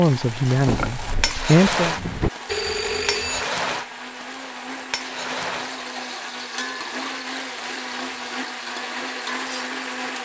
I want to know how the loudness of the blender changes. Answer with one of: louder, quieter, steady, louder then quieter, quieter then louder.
louder.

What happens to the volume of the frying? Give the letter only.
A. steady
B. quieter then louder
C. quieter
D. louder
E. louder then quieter
C.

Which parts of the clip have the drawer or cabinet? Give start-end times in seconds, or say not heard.
0.5-2.3.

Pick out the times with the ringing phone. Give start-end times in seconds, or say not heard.
2.5-3.5.